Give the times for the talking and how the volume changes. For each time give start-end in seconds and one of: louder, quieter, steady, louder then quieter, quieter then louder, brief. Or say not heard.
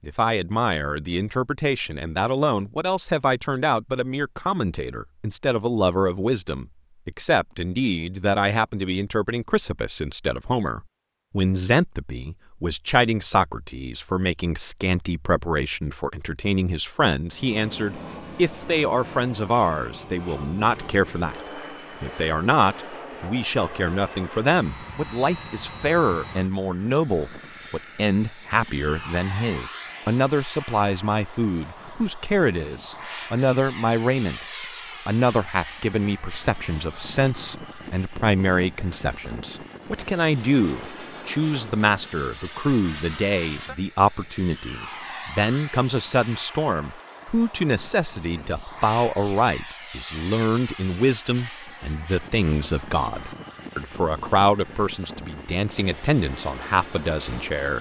0.0-57.7 steady.